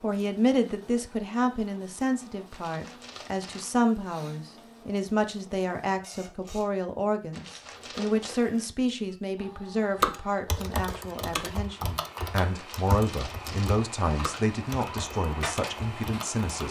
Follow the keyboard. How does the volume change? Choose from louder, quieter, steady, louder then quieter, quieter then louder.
quieter.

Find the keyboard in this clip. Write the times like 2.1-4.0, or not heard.
10.0-16.4.